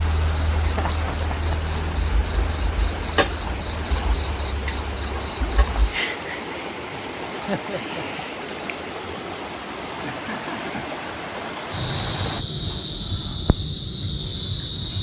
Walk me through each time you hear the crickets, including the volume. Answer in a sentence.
The crickets can be heard from 0.0 to 14.9 s, getting louder.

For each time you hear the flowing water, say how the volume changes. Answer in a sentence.
You can hear the flowing water from 0.0 to 12.4 s, at a steady volume.